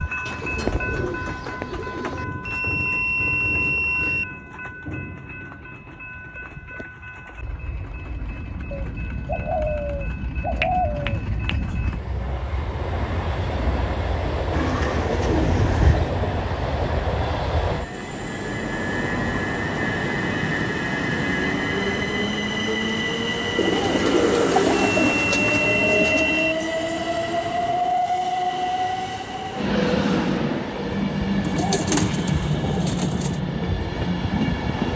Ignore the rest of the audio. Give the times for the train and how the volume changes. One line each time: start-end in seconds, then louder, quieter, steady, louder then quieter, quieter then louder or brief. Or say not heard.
0.0-34.9 louder.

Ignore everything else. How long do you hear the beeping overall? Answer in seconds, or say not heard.
4 s.